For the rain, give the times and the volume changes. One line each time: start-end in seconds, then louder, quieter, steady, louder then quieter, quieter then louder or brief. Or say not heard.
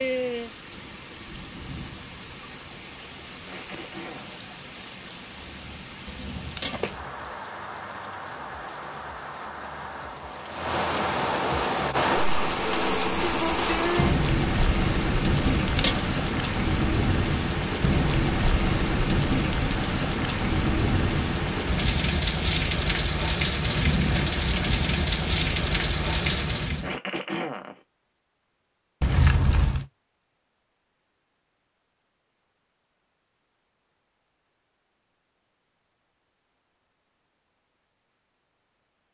0.0-26.9 louder.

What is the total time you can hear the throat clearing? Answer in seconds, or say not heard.
2 s.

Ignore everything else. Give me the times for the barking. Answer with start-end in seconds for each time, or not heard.
not heard.